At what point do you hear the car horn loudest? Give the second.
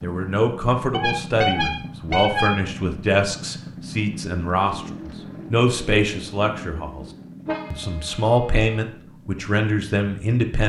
2 s.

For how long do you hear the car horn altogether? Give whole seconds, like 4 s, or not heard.
3 s.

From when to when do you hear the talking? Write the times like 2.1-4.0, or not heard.
0.0-7.0, 7.7-10.6.